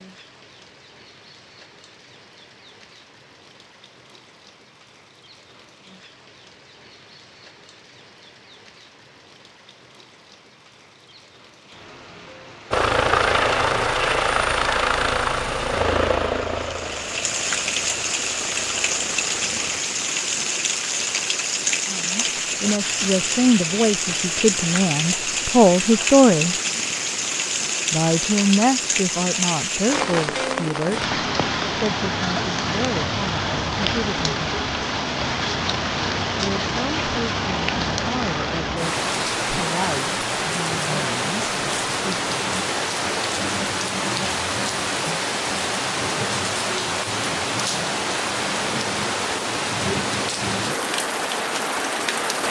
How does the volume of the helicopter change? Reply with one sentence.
The volume of the helicopter goes down.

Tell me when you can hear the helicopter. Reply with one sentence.
You can hear the helicopter from 12.7 to 19.8 s.